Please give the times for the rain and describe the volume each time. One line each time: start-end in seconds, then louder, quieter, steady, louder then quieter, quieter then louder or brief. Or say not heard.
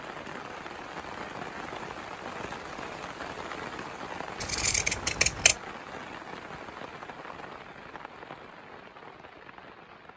0.0-10.1 quieter.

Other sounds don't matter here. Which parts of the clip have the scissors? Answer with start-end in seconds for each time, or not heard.
4.4-5.5.